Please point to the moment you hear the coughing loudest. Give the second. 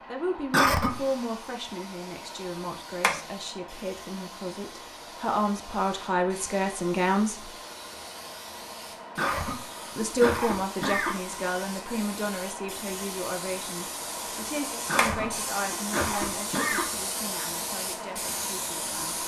1 s.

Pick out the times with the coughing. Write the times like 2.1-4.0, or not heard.
0.5-1.1, 9.2-11.2, 14.8-16.9.